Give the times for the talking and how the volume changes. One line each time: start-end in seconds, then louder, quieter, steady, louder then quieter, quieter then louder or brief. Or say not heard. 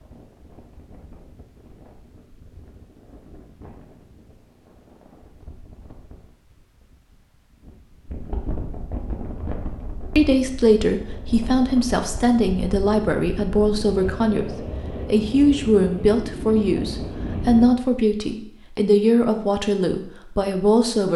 10.2-21.1 steady.